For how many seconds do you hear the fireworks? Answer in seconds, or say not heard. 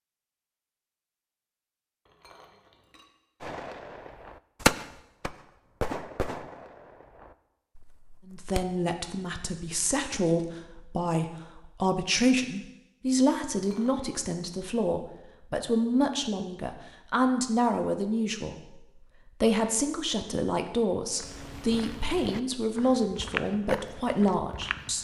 5 s.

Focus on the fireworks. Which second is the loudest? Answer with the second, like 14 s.
5 s.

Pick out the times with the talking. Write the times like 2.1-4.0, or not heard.
8.2-24.9.